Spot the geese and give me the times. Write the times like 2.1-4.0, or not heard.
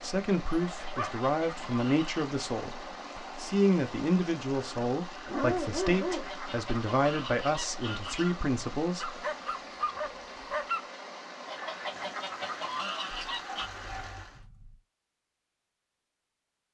0.5-2.1, 5.9-8.4, 11.4-13.7.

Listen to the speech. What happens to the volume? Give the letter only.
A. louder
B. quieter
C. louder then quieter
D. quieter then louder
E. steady
E.